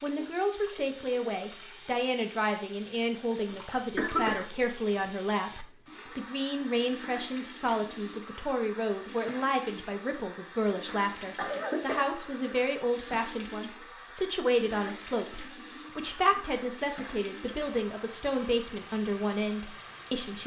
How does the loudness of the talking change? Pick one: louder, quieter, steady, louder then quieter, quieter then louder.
steady.